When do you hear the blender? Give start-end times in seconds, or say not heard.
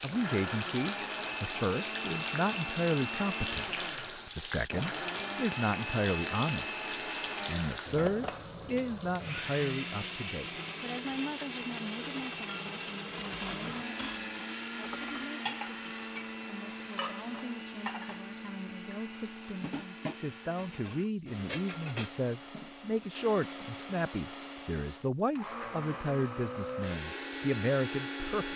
0.0-28.5.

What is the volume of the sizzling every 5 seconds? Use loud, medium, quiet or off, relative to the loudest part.
loud, loud, loud, medium, quiet, quiet.